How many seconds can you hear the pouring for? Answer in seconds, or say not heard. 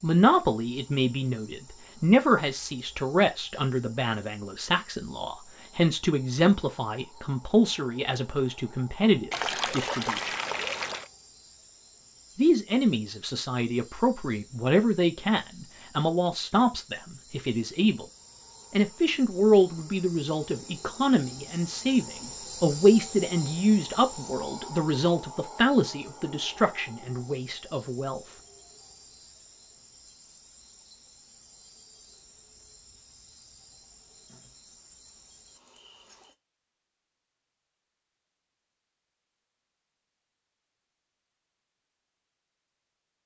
2 s.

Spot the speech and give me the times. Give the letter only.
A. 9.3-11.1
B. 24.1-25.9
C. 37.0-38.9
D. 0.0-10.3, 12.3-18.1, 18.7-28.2
D.